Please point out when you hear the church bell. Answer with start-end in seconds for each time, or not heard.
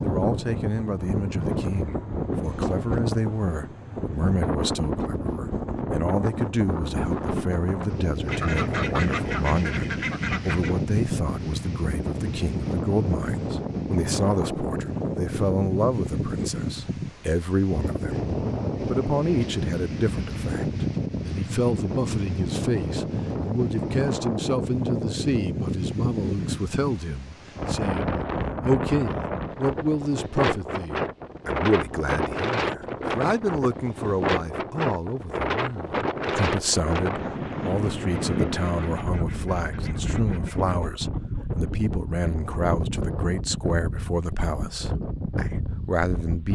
not heard.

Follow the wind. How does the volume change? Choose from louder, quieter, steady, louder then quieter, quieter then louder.
steady.